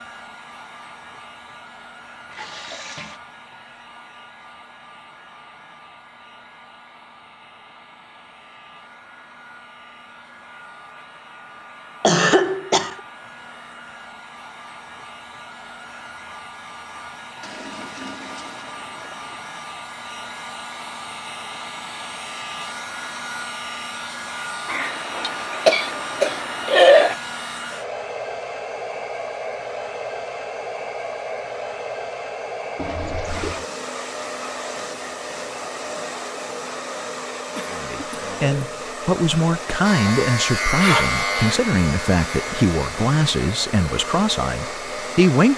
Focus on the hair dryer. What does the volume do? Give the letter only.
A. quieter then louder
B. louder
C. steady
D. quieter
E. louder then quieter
B.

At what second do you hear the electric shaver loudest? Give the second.
41 s.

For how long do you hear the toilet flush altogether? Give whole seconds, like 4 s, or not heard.
4 s.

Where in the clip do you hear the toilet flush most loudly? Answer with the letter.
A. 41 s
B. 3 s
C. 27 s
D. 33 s
D.